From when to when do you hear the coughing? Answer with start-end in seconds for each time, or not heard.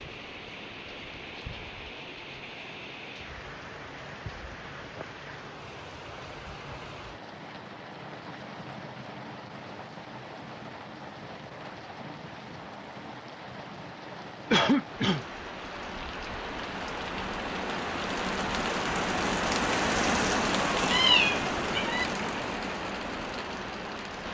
14.5-15.2.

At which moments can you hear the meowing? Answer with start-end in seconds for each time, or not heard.
20.8-22.1.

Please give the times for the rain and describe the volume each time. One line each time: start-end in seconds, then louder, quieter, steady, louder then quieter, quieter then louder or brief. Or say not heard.
0.0-24.3 louder.